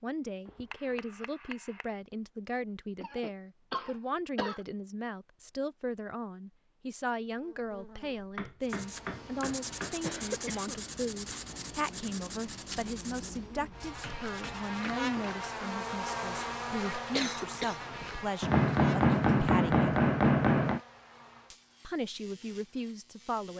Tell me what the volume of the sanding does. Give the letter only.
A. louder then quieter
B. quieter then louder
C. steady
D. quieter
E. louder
D.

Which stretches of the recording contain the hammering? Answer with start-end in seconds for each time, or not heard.
0.5-1.9, 8.3-9.9, 12.8-15.1, 18.4-20.8.